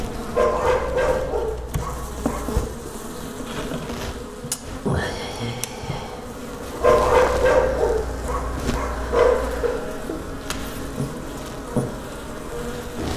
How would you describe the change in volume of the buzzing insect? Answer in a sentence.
The loudness of the buzzing insect stays about the same.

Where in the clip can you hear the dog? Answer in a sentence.
You can hear the dog from 0.3 to 2.6 s and from 6.8 to 9.7 s.